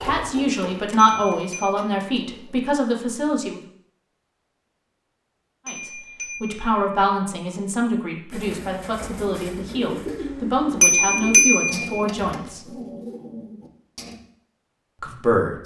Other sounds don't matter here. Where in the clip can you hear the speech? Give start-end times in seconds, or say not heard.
0.0-3.6, 5.7-12.6, 15.0-15.6.